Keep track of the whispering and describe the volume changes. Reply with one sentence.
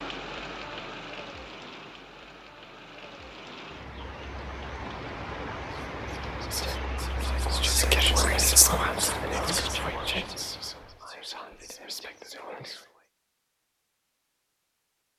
The loudness of the whispering goes up, then down.